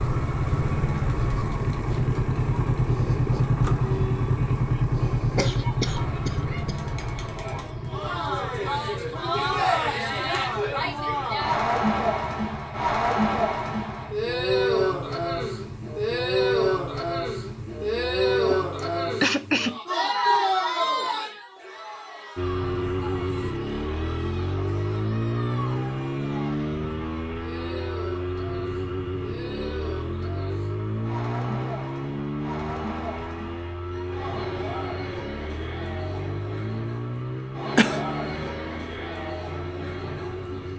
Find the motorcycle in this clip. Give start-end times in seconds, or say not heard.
0.0-19.2, 22.4-40.7.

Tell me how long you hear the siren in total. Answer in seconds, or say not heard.
not heard.